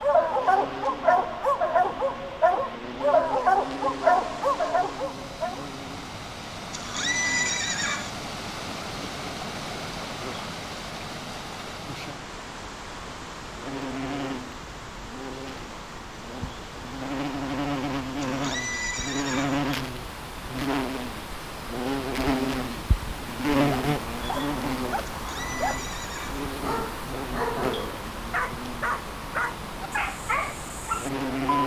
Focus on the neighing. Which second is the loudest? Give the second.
7 s.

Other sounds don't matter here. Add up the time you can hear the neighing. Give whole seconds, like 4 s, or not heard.
4 s.